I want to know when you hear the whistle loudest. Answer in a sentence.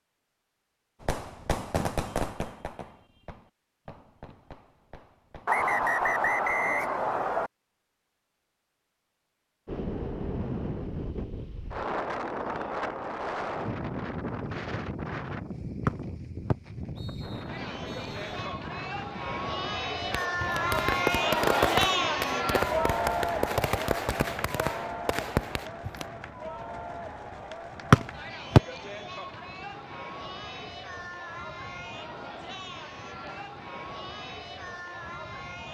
The loudest moment of the whistle is at 28 seconds.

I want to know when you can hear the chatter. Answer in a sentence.
The chatter can be heard from 17.4 to 35.6 s.